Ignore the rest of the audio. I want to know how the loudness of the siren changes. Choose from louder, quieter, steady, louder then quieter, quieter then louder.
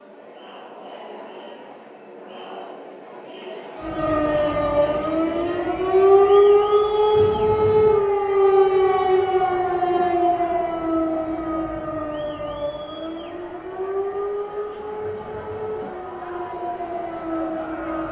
quieter.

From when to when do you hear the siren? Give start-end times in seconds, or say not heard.
3.8-18.0.